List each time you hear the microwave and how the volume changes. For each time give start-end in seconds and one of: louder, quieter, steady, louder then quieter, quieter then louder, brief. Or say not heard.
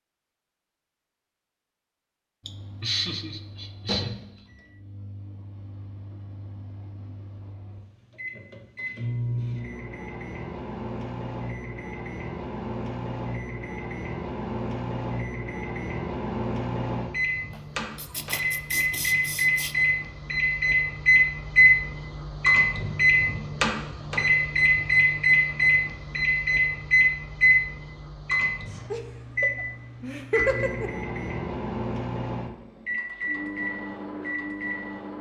2.4-35.1 louder then quieter.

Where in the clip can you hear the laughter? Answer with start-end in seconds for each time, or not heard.
2.5-4.2, 17.5-19.8, 28.9-30.9.